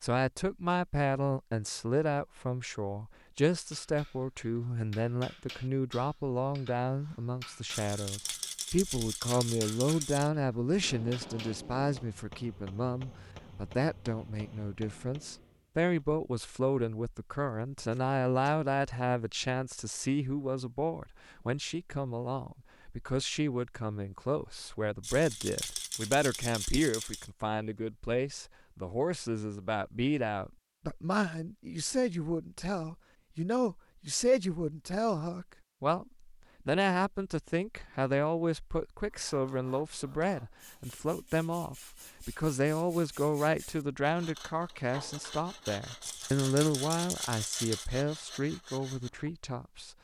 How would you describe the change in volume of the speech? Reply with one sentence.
The volume of the speech stays about the same.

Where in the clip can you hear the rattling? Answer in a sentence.
You can hear the rattling from 7.7 to 10.3 s, from 25.0 to 27.3 s and from 46.0 to 47.9 s.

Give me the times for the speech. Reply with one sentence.
You can hear the speech from 0.0 to 49.9 s.